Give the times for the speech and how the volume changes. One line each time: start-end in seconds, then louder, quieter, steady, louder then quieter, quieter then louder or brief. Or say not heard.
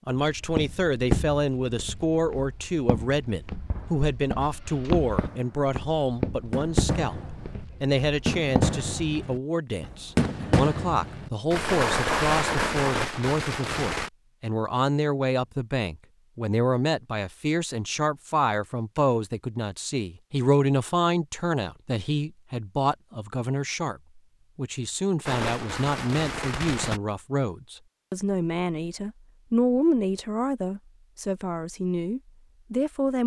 0.1-33.2 steady.